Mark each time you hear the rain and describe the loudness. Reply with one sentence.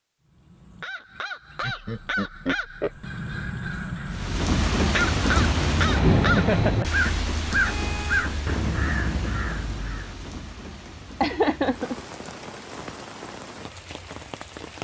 You can hear the rain from 4.0 to 14.7 s, getting quieter.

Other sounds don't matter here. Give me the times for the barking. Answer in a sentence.
You can't hear the barking here.